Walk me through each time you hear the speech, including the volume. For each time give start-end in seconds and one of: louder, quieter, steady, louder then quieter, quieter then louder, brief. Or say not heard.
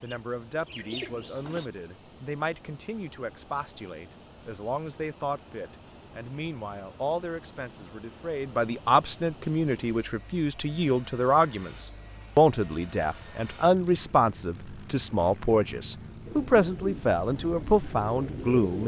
0.0-18.8 louder.